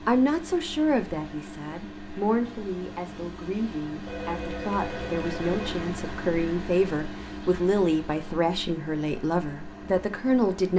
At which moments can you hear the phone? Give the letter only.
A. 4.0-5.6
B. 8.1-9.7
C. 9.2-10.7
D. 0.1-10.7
A.